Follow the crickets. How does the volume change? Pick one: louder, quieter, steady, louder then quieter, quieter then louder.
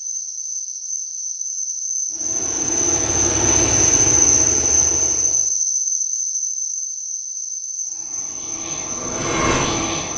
louder then quieter.